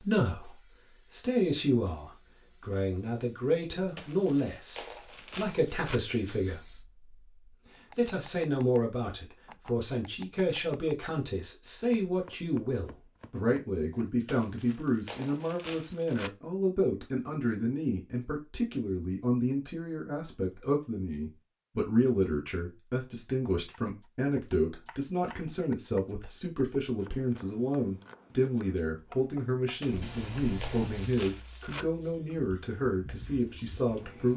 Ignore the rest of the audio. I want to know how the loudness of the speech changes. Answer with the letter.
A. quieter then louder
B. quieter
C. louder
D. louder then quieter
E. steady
E.